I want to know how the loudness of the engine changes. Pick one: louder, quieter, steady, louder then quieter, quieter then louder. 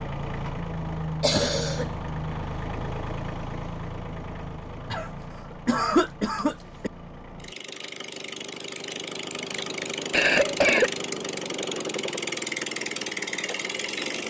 quieter then louder.